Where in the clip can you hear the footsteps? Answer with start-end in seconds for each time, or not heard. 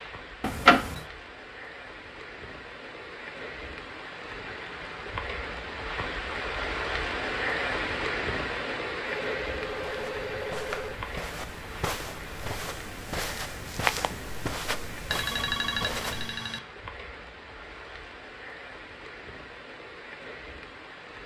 9.7-16.4.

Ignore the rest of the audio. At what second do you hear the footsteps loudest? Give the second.
14 s.